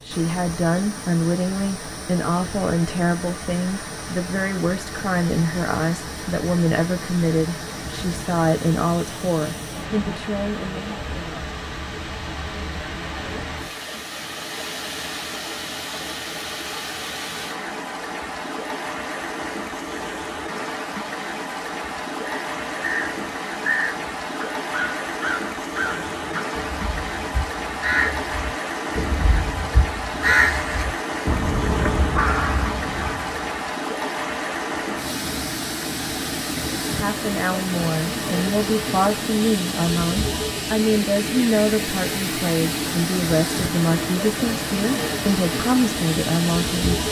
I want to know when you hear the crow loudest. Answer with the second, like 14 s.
30 s.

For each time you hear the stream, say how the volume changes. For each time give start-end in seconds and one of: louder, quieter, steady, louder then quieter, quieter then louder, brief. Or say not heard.
0.0-47.0 louder.